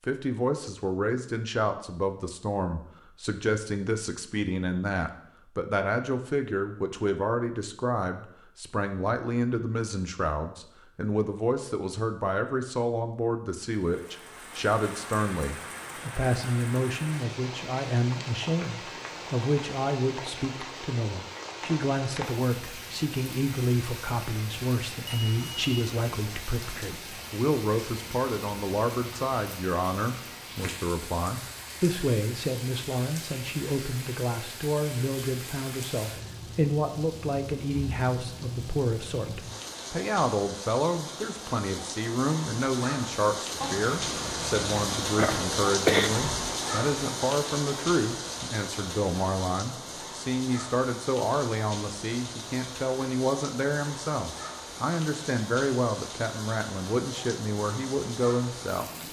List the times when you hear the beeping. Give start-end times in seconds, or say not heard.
25.1-25.7, 43.6-44.9.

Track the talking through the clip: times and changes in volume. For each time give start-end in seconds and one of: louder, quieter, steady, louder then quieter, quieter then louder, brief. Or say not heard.
0.0-58.9 steady.